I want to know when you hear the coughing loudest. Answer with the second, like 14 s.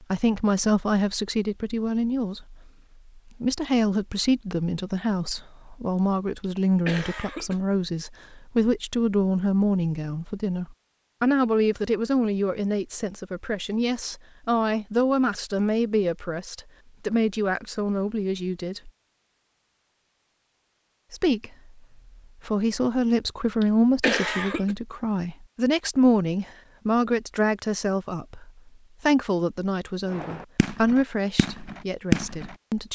24 s.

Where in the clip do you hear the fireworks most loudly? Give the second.
32 s.